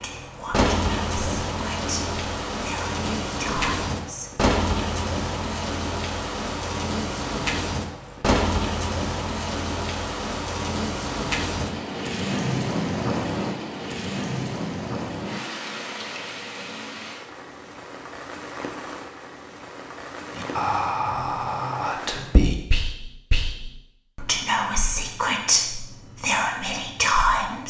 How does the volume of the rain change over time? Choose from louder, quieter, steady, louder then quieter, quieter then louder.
quieter.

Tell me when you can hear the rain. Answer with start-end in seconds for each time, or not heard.
0.0-22.4.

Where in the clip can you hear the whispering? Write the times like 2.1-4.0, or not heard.
0.0-4.3, 20.4-27.6.